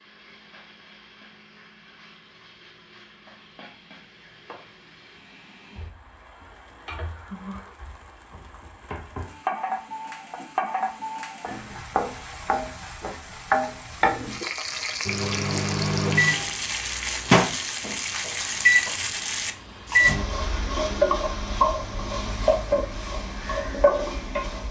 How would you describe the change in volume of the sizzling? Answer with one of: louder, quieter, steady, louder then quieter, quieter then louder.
louder.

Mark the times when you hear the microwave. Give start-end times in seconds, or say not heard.
15.1-20.2.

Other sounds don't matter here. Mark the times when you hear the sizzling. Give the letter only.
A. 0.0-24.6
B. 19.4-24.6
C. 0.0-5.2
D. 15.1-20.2
A.